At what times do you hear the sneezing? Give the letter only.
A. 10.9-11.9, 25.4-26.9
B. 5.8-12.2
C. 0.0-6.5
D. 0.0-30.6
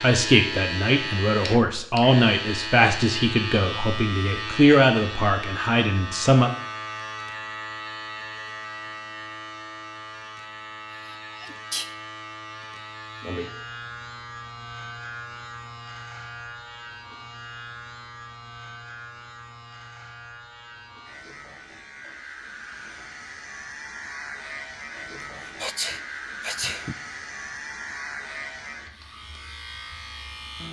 A.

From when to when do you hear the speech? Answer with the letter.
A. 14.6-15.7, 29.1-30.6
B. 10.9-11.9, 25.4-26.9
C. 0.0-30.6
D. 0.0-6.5
D.